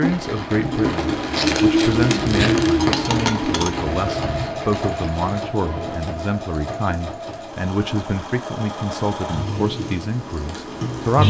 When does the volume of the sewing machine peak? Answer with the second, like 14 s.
2 s.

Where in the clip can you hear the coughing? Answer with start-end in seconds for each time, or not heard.
not heard.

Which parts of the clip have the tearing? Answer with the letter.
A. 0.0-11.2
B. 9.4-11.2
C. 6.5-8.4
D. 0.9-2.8
D.